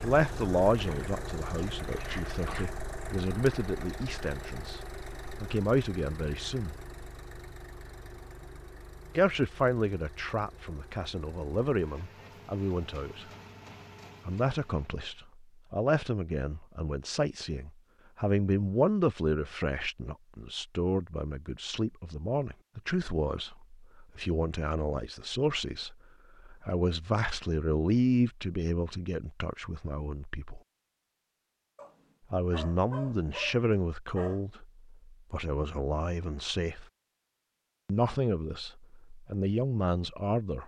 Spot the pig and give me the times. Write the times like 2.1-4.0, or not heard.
not heard.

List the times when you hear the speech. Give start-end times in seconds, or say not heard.
0.0-6.8, 9.2-13.3, 14.2-30.6, 32.3-36.9, 37.9-40.6.